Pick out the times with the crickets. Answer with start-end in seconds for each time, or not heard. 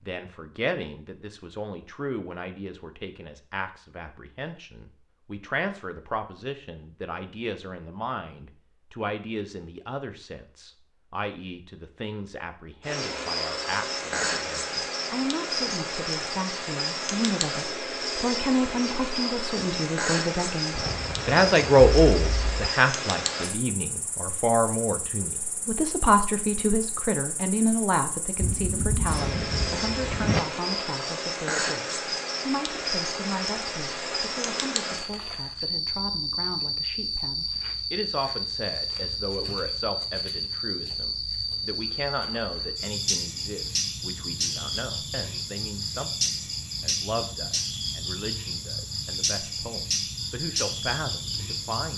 12.8-51.9.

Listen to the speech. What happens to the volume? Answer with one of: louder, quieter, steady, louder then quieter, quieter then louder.
louder then quieter.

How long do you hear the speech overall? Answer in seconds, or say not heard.
52 s.